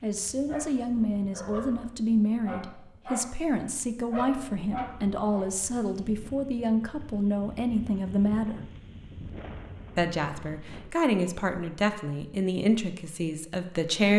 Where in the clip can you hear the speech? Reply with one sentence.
The speech can be heard from 0.0 to 8.7 s and from 9.9 to 14.1 s.